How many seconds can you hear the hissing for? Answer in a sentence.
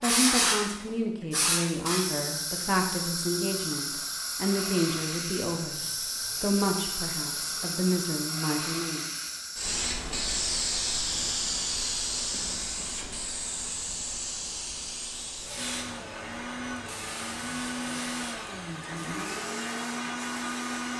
The hissing can be heard for 21 seconds in total.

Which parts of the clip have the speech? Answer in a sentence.
You can hear the speech from 0.0 to 5.8 s and from 6.4 to 9.1 s.